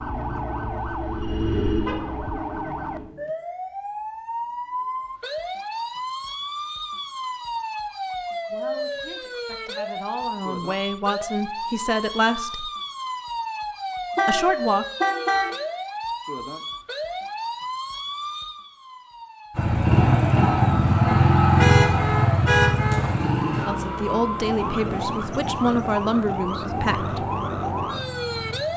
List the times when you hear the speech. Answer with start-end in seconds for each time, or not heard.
8.5-12.7, 14.2-14.8, 23.6-27.2.